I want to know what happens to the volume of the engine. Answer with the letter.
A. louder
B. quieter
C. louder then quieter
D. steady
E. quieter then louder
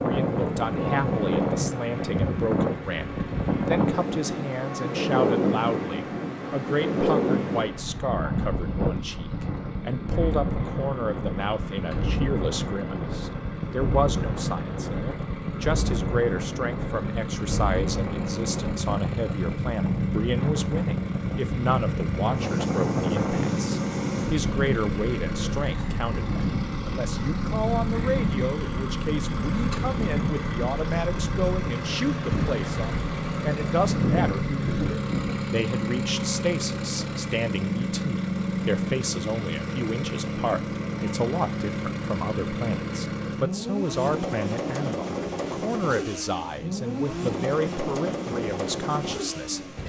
A.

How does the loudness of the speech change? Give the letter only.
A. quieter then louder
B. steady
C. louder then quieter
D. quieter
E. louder
B.